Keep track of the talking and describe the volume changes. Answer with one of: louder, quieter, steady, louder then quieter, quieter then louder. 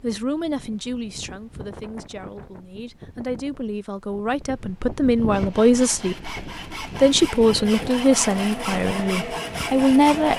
louder.